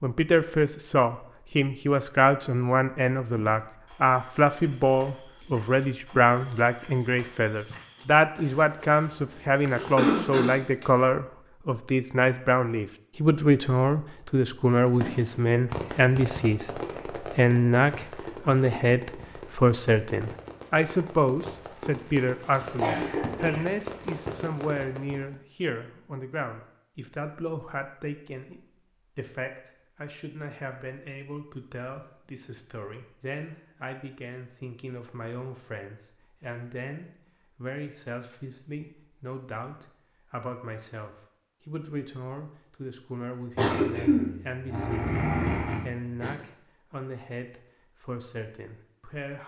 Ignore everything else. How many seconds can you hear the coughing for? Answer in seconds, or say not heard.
5 s.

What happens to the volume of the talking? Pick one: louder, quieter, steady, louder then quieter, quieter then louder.
quieter.